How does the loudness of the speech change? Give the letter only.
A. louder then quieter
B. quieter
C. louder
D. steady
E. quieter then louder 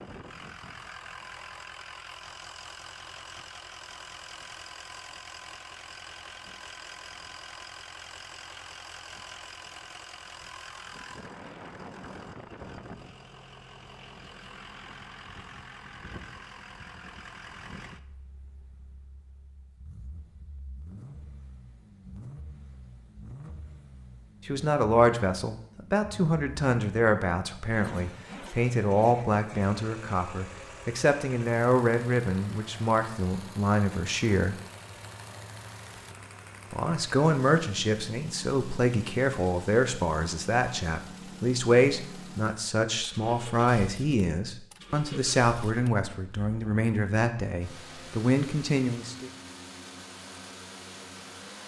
D.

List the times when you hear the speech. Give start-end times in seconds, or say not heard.
24.4-34.5, 36.7-49.3.